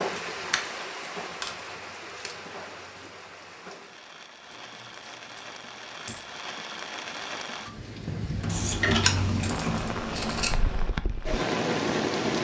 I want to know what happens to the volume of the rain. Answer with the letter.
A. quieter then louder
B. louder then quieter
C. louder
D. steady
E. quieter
A.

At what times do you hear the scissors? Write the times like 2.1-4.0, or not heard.
8.4-10.5.